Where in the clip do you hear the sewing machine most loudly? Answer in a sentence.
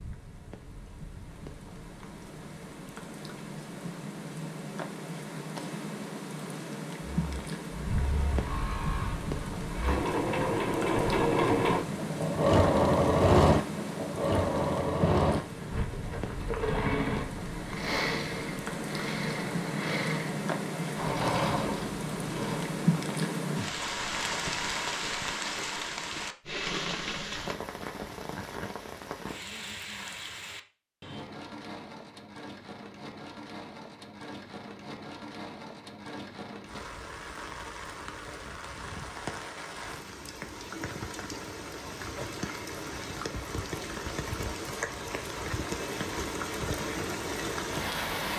The loudest moment of the sewing machine is at 13 seconds.